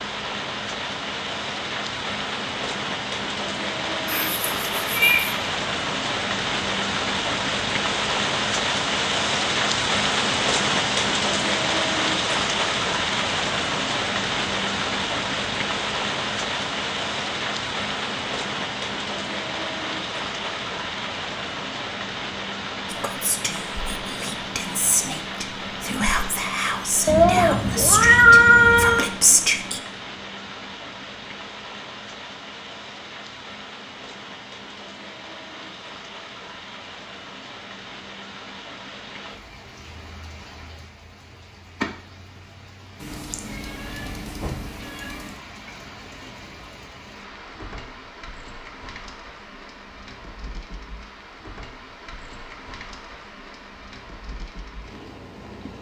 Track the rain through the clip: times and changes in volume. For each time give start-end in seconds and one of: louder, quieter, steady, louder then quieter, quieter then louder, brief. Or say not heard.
0.0-55.7 quieter.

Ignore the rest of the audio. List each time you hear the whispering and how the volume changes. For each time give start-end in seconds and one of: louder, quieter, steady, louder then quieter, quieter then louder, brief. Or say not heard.
22.9-29.8 louder.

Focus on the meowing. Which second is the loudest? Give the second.
28 s.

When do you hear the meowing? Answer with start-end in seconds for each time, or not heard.
4.0-5.3, 27.1-29.1, 43.0-45.3.